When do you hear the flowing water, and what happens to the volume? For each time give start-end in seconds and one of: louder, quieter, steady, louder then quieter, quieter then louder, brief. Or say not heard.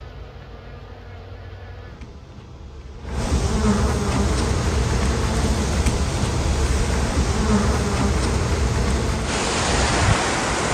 4.2-10.6 louder.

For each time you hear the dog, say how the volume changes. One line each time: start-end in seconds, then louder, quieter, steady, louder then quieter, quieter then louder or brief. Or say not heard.
not heard.